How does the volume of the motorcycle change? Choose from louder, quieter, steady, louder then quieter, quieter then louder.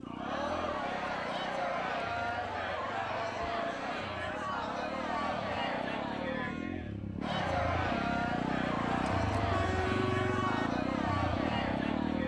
louder.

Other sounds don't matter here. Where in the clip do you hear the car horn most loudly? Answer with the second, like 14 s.
10 s.